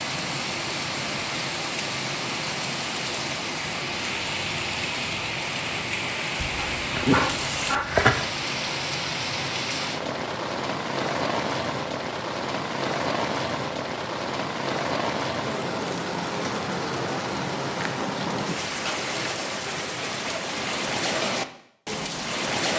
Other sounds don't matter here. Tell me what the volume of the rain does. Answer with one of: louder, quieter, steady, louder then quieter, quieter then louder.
steady.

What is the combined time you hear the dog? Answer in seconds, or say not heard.
2 s.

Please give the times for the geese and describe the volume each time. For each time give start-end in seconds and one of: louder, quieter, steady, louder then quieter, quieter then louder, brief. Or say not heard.
not heard.